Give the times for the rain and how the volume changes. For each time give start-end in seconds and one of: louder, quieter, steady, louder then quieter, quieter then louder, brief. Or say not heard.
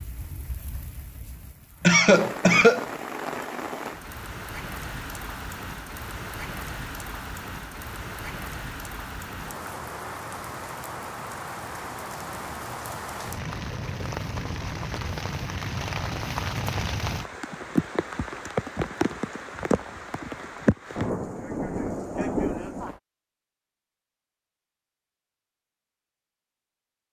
0.0-23.0 louder.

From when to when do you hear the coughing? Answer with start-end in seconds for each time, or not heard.
1.8-2.9.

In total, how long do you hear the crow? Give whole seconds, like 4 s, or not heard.
not heard.